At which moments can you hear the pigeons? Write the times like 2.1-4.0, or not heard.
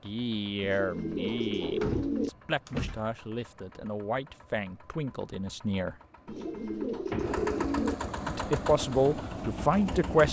0.6-2.3, 6.2-8.0.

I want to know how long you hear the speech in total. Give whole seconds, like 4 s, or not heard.
8 s.